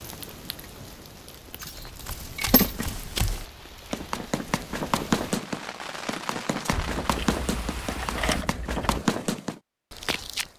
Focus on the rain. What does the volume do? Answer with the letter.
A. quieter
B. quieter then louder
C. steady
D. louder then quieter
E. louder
E.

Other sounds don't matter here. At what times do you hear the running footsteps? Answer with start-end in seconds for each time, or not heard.
1.8-10.5.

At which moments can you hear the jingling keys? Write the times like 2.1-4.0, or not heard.
1.6-3.0, 6.7-9.1.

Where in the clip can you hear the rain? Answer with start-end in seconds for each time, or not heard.
0.0-8.4.